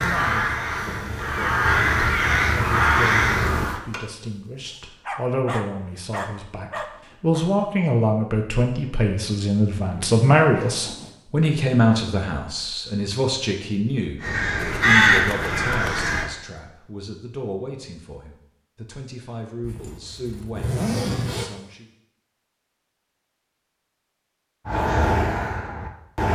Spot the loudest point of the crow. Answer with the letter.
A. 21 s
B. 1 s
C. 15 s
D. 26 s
C.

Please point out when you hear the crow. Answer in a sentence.
The crow can be heard from 0.0 to 3.8 s, from 14.2 to 16.3 s and from 24.6 to 26.3 s.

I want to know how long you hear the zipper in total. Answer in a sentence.
The zipper can be heard for 4 seconds in total.